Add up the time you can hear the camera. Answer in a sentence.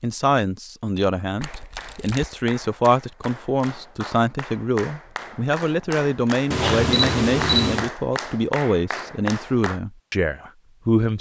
You can hear the camera for 2 seconds altogether.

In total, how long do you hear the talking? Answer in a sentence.
You can hear the talking for 11 seconds altogether.